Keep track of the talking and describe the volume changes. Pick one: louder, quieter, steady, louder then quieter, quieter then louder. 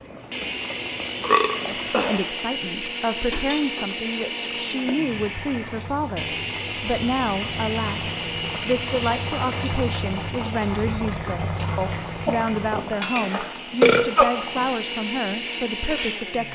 steady.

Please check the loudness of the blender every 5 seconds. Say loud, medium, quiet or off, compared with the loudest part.
loud, loud, medium, loud.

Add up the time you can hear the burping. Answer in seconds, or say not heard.
3 s.